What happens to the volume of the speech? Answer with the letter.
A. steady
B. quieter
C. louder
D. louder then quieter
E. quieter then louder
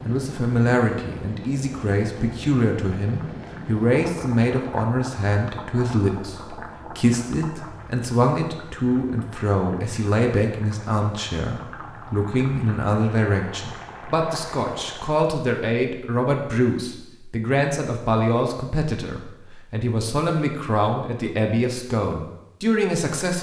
A.